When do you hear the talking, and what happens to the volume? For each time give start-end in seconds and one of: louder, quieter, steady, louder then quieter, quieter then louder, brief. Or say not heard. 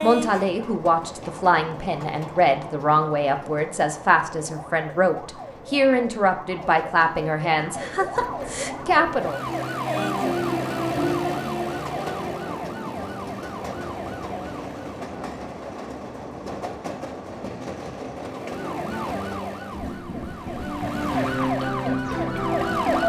0.0-9.4 steady.